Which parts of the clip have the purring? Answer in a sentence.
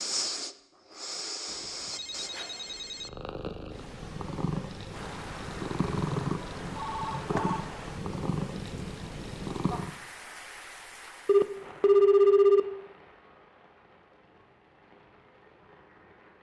You can hear the purring from 3.0 to 9.9 s.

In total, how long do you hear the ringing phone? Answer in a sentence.
You can hear the ringing phone for 4 seconds altogether.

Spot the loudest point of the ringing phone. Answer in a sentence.
The loudest moment of the ringing phone is at 12 seconds.